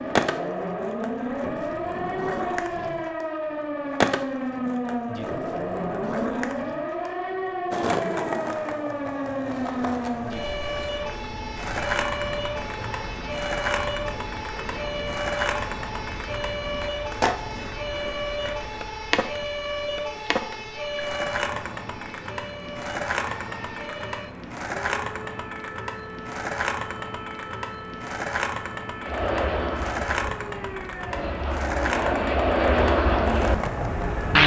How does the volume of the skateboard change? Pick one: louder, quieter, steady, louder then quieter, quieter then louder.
steady.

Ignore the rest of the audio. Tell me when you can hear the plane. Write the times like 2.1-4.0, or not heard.
29.0-34.4.